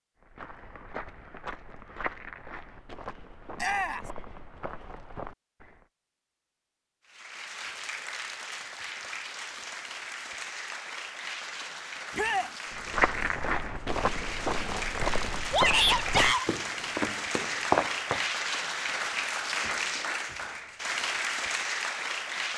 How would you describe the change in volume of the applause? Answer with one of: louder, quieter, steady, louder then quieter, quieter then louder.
louder.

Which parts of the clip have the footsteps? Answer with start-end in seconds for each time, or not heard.
0.2-5.8, 12.8-18.2.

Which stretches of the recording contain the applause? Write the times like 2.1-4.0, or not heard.
7.0-22.5.